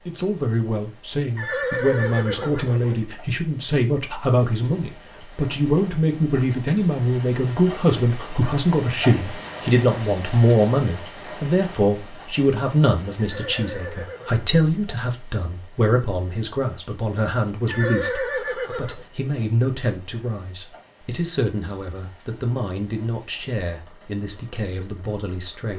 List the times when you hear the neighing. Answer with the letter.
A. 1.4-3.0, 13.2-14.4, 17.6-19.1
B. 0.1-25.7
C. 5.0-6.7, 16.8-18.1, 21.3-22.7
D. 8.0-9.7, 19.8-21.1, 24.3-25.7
A.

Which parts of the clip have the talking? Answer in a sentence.
You can hear the talking from 0.1 to 25.7 s.